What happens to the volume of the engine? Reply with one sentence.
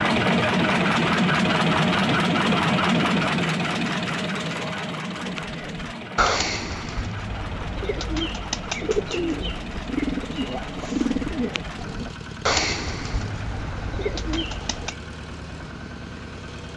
The loudness of the engine goes down.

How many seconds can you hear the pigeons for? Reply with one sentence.
You can hear the pigeons for 10 seconds altogether.